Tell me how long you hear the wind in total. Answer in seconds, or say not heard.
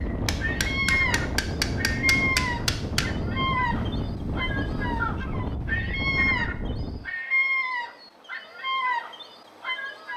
7 s.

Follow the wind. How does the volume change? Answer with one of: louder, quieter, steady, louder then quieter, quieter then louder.
steady.